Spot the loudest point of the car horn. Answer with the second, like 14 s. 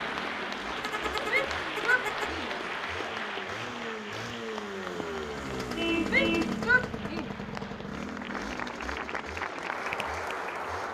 6 s.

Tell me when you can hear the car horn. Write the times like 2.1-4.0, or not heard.
0.8-2.4, 5.8-6.5.